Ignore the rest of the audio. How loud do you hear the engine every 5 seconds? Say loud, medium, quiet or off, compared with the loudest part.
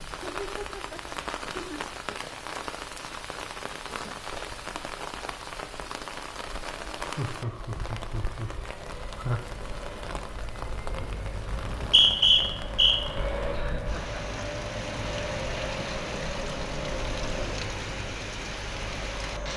off, medium, loud, loud.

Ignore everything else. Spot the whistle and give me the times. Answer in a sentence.
The whistle can be heard from 11.5 to 12.9 s.